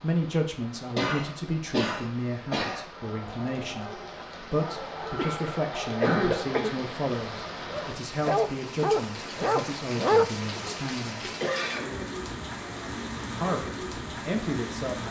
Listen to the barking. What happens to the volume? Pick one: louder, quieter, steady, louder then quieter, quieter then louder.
louder.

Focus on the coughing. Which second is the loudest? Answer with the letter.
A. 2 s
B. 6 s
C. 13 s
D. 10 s
B.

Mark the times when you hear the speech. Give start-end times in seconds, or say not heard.
0.0-11.2, 13.2-15.0.